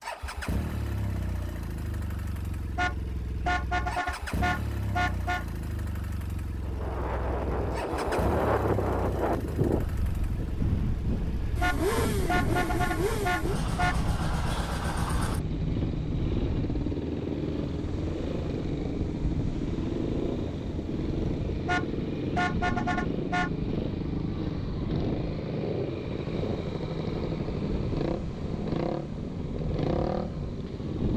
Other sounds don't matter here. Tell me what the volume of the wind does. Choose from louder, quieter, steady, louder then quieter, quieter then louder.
quieter.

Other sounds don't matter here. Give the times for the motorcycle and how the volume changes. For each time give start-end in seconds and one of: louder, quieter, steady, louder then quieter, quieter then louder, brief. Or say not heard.
0.0-31.1 louder.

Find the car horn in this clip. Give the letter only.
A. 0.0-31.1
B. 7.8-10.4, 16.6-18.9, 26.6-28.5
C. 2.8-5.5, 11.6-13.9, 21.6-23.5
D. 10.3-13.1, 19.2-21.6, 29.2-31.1
C.